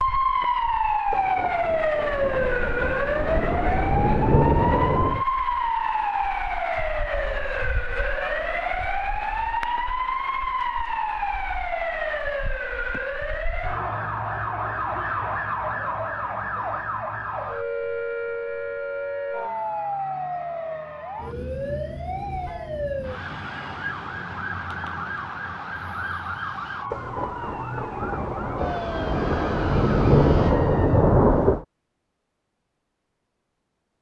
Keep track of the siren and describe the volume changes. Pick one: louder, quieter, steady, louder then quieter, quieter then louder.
quieter.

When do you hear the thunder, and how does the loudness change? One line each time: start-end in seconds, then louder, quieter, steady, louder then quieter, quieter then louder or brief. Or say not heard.
1.1-5.2 louder
26.9-31.6 louder.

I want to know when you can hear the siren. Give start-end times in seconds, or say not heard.
0.0-31.1.